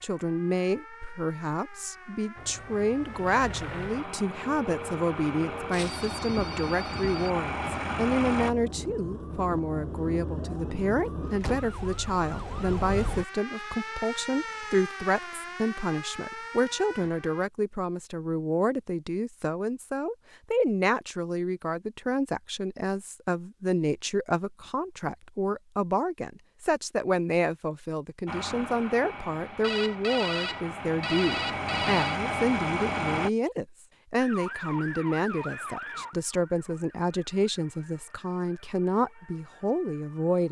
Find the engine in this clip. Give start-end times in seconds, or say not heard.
2.4-8.6, 28.2-33.3.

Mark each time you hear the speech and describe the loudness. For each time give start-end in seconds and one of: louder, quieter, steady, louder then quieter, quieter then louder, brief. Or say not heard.
0.0-40.4 steady.